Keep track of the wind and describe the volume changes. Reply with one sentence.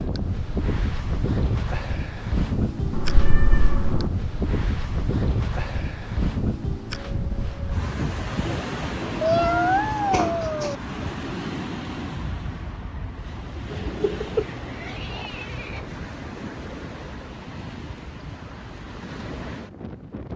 The volume of the wind goes down.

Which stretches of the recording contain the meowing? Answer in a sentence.
The meowing can be heard from 2.9 to 4.1 s, from 9.2 to 10.8 s and from 13.7 to 16.1 s.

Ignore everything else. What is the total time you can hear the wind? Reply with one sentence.
You can hear the wind for 20 seconds altogether.